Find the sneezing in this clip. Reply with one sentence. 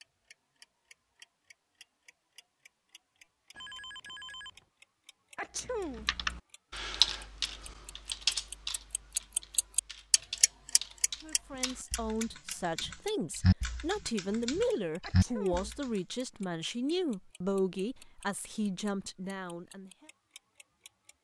The sneezing can be heard from 5.3 to 6.0 s and from 15.0 to 15.7 s.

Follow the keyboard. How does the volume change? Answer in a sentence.
The loudness of the keyboard goes down, then up.